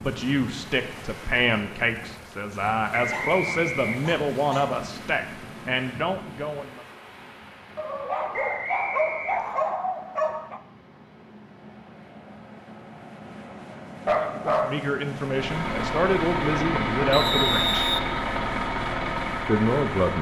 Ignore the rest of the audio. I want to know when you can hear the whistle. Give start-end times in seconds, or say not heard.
3.0-4.0, 8.3-9.8, 17.1-18.1.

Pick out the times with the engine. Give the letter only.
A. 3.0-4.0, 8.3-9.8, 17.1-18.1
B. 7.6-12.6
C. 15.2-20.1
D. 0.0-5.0
C.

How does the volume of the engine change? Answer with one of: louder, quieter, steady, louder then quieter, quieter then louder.
steady.